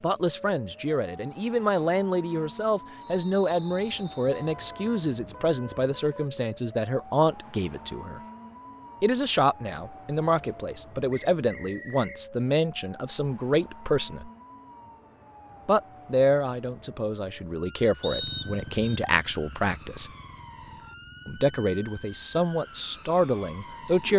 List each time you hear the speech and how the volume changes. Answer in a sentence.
You can hear the speech from 0.0 to 8.2 s, at a steady volume; from 9.0 to 14.3 s, at a steady volume; from 15.7 to 20.1 s, getting quieter then louder; and briefly from 21.2 to 24.1 s.